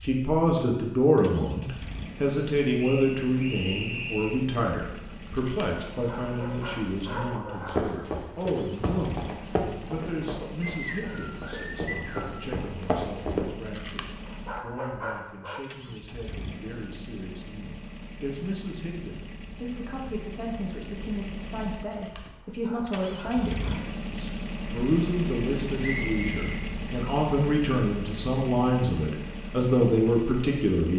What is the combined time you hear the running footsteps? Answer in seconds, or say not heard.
6 s.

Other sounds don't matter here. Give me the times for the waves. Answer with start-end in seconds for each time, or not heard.
not heard.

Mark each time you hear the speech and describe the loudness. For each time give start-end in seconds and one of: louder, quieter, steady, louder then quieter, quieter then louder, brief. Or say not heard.
0.0-30.9 quieter then louder.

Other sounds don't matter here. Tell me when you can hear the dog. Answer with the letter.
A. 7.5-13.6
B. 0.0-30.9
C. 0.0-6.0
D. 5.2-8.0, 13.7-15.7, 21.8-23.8
D.